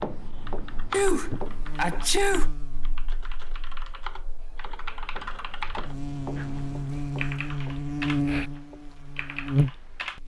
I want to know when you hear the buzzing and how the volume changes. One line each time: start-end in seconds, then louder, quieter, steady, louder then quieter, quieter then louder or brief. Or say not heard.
0.2-10.2 quieter then louder.